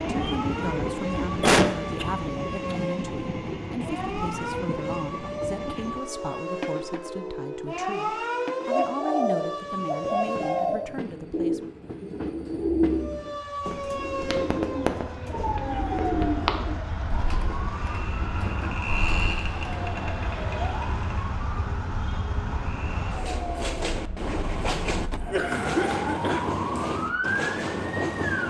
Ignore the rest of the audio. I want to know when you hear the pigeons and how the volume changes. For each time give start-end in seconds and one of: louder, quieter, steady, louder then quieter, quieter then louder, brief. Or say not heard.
8.6-20.1 quieter.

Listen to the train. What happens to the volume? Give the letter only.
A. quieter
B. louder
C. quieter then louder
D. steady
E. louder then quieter
C.